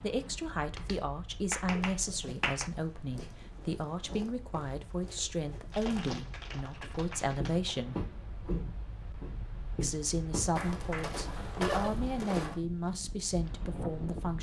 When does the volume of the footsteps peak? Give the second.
12 s.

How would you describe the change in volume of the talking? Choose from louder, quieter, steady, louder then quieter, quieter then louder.
steady.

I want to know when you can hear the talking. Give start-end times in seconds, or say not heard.
0.0-8.0, 9.8-14.3.